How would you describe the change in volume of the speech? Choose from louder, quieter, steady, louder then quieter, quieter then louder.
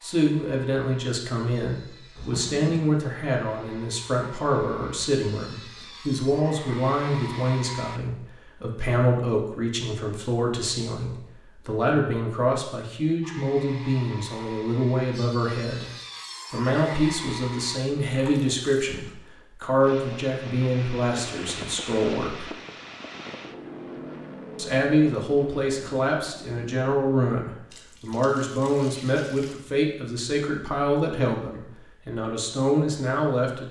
steady.